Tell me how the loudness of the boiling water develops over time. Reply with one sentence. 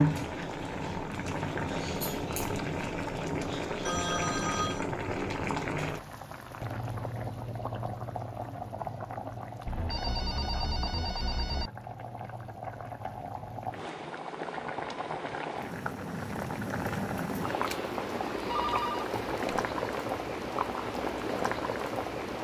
The loudness of the boiling water goes down, then up.